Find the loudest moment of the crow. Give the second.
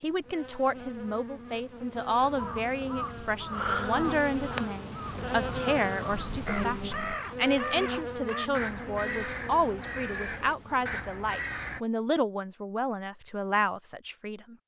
4 s.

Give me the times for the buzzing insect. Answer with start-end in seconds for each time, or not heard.
0.0-11.1.